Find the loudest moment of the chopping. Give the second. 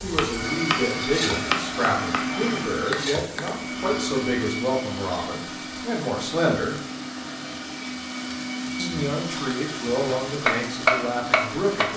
11 s.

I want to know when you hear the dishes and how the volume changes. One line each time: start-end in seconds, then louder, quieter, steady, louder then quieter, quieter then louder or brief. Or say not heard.
not heard.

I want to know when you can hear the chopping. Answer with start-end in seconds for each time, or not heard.
0.0-3.5, 10.1-11.9.